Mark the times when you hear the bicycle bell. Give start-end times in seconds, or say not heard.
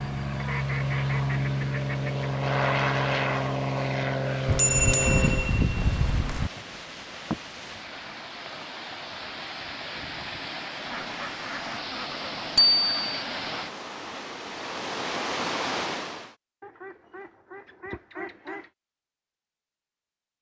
4.5-6.5, 12.6-13.2.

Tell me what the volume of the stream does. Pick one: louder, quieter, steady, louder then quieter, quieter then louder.
louder.